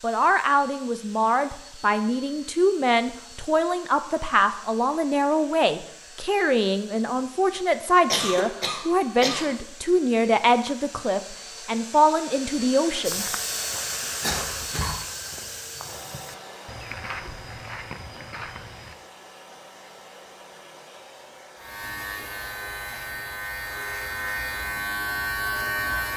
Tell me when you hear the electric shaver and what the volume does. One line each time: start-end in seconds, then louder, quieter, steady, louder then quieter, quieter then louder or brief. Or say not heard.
21.6-26.1 louder.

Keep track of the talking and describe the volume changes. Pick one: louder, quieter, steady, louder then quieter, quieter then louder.
steady.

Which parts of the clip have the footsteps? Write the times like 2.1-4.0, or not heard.
13.0-18.9.